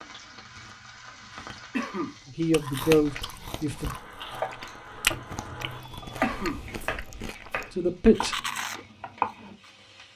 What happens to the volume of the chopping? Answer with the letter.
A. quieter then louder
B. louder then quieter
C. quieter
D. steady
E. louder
B.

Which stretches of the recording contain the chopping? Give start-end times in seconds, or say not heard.
4.3-9.6.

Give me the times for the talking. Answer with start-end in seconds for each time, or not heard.
2.2-4.0, 7.7-8.4.